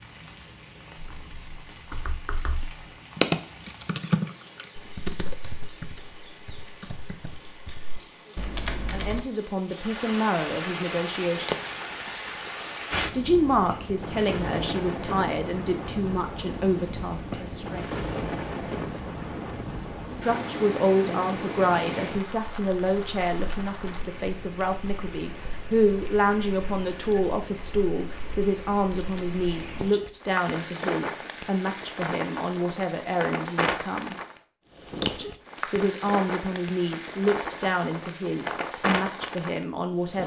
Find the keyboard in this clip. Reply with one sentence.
You can hear the keyboard from 0.9 to 9.2 s.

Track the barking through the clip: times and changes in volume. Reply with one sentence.
You can't hear the barking here.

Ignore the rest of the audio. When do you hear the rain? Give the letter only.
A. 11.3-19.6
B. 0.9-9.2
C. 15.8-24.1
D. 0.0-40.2
D.